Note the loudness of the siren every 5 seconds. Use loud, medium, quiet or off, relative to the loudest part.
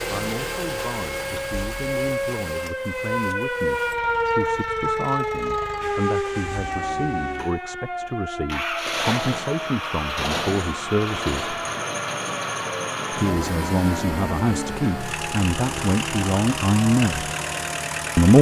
loud, loud, medium, medium.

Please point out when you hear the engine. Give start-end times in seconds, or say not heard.
0.0-18.3.